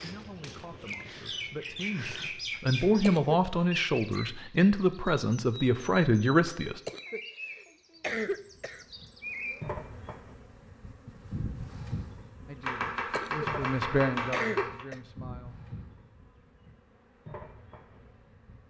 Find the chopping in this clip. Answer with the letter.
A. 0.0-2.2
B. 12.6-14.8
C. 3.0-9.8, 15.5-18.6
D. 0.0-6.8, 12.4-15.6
B.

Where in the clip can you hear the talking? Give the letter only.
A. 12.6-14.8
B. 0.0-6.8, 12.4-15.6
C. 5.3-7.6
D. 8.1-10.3
B.